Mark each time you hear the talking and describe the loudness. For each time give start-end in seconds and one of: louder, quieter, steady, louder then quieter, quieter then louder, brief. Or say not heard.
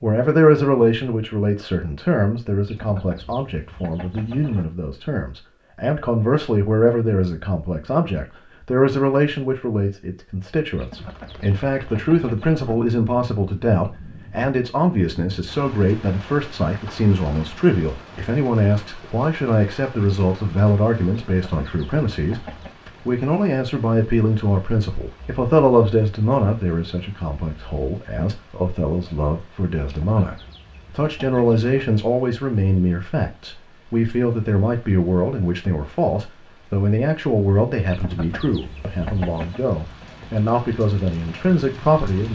0.0-42.3 steady.